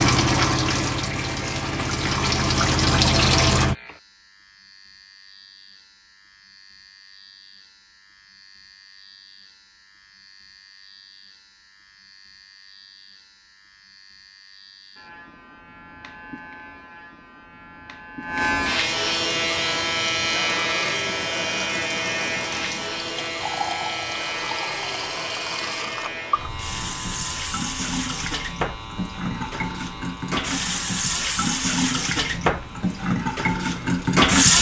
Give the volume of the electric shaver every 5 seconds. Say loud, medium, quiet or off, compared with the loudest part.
quiet, quiet, quiet, loud, loud, medium, quiet.